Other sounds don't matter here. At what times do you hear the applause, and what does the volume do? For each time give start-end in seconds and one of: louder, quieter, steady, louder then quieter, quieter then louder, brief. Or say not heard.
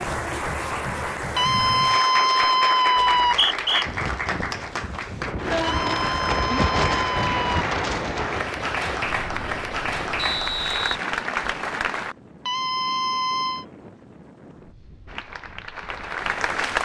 0.0-12.2 steady
15.1-16.7 brief.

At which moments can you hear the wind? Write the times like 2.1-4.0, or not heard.
3.8-16.7.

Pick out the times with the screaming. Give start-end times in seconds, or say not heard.
1.4-3.4, 5.6-7.7, 12.4-13.7.